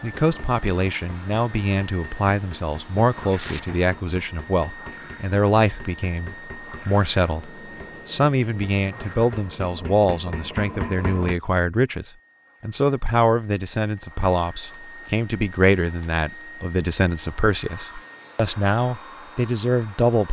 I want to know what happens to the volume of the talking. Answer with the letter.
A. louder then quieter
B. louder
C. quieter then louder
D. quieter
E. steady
E.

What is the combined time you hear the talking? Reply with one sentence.
You can hear the talking for 20 seconds altogether.